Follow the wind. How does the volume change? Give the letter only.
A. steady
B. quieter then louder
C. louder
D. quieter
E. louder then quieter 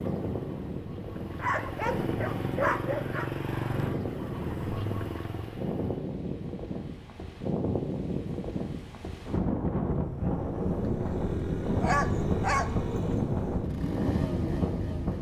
C.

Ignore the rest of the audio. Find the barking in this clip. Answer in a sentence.
You can hear the barking from 1.4 to 3.3 s and from 11.8 to 13.2 s.